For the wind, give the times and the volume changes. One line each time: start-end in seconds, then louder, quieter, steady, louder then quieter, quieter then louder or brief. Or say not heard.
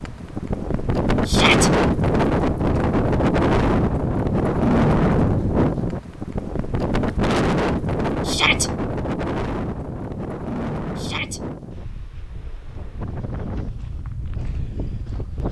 0.0-15.4 quieter.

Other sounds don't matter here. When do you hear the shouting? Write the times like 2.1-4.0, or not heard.
1.2-1.7, 8.2-8.7, 10.9-11.4.